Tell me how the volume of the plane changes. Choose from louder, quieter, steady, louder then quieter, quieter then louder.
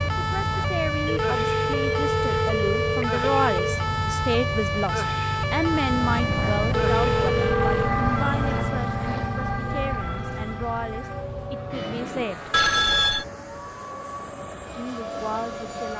louder then quieter.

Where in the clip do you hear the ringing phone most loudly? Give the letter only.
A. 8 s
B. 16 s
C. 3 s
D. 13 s
D.